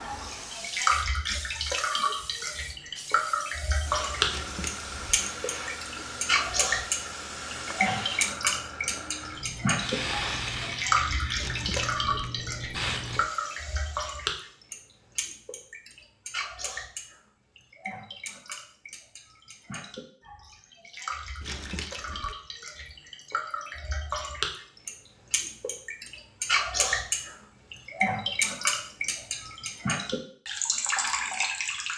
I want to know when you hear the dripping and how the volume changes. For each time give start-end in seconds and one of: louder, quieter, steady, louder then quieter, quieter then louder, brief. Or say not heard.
0.0-31.9 quieter then louder.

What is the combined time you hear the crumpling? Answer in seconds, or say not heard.
3 s.